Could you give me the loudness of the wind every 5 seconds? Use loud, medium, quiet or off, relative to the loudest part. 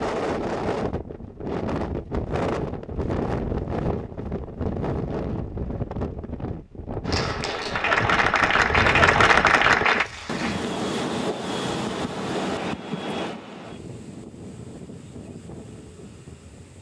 loud, loud, loud, quiet.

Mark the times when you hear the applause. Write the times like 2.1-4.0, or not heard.
7.0-10.6.